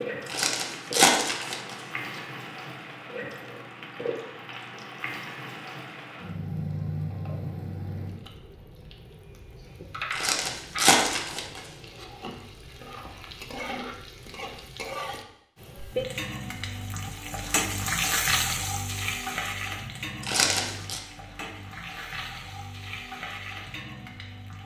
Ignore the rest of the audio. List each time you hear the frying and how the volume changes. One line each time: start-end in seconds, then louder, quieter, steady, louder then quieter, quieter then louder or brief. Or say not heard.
0.0-24.6 louder then quieter.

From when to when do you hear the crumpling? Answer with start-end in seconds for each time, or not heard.
0.2-2.2, 10.1-12.1, 20.2-21.0.